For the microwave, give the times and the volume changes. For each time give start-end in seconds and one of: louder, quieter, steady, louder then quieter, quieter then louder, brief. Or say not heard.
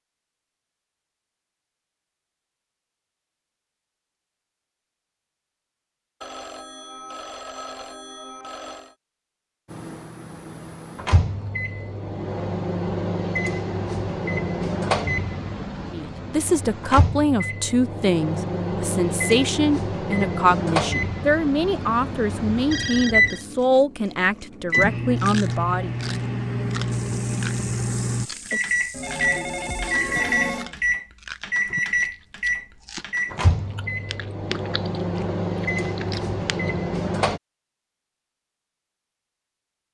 9.7-37.4 steady.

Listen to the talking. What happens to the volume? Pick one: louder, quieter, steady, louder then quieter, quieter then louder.
steady.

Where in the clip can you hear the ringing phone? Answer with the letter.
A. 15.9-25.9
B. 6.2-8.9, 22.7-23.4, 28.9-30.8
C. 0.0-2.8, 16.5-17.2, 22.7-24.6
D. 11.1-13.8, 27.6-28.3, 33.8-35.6
B.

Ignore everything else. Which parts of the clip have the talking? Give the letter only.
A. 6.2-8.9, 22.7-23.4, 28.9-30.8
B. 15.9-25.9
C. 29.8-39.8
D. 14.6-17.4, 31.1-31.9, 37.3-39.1
B.